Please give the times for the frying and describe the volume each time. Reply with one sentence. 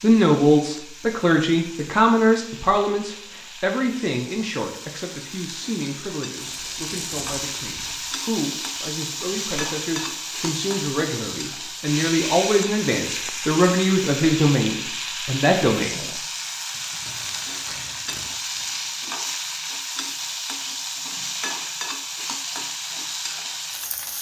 You can hear the frying from 0.0 to 24.1 s, getting louder.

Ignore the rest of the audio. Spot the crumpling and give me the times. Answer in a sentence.
The crumpling can be heard from 6.4 to 8.2 s and from 16.7 to 18.6 s.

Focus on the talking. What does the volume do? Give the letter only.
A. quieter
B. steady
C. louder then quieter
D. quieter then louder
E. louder
D.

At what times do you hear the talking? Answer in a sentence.
You can hear the talking from 0.0 to 16.1 s.